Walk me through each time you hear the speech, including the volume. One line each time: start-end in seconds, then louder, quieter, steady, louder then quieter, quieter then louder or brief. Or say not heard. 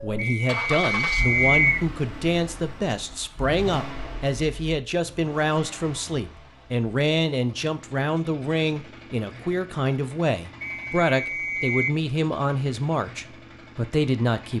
0.0-14.5 steady.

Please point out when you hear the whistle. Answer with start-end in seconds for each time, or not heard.
0.1-1.9, 10.6-11.9.